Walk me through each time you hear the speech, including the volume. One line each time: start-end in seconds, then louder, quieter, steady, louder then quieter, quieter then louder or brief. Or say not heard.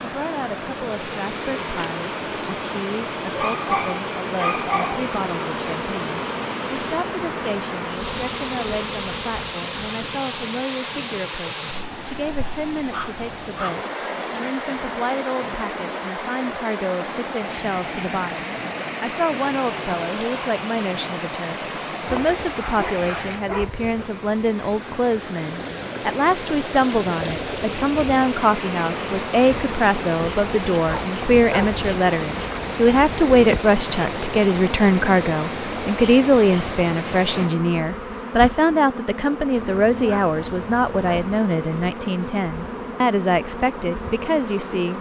0.0-44.9 louder.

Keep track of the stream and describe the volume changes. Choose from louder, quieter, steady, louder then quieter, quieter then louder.
steady.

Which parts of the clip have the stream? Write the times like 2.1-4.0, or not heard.
0.0-37.5.